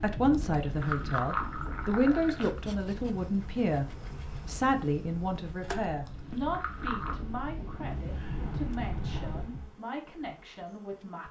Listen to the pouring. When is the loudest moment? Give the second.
1 s.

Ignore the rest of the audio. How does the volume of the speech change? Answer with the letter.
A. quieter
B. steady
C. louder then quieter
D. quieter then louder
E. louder
A.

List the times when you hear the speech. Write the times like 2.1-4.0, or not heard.
0.0-11.2.